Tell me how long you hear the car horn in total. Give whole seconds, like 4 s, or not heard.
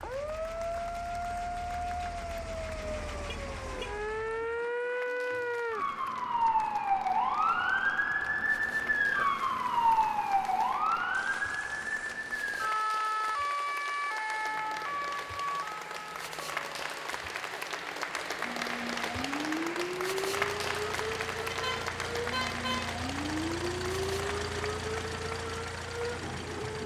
3 s.